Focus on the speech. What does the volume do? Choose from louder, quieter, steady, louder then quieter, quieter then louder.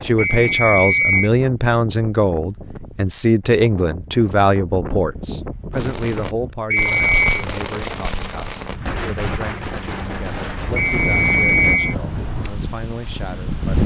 quieter.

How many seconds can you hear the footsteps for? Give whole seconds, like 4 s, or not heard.
not heard.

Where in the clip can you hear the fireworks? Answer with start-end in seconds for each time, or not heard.
5.7-11.8.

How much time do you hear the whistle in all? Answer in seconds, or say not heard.
3 s.